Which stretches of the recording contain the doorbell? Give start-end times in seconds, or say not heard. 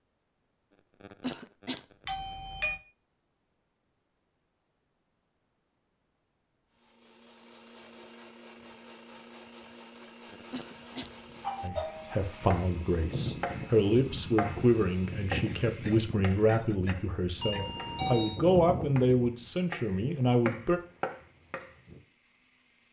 2.0-2.8, 11.0-12.6, 17.4-18.4.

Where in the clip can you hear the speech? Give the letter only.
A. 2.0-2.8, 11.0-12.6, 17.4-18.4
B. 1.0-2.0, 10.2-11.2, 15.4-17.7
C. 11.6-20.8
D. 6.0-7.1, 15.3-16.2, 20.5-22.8
C.